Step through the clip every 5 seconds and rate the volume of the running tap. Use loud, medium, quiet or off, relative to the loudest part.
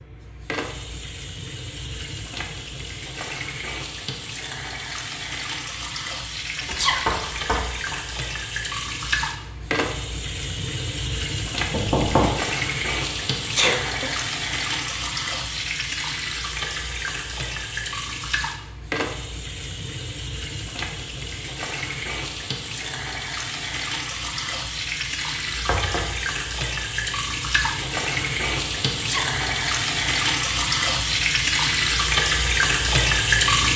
quiet, medium, medium, medium, medium, medium, loud.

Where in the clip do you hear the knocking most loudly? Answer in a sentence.
The volume of the knocking peaks at 12 seconds.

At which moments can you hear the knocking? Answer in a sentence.
You can hear the knocking from 6.7 to 8.0 s, from 11.7 to 12.3 s and from 25.5 to 26.1 s.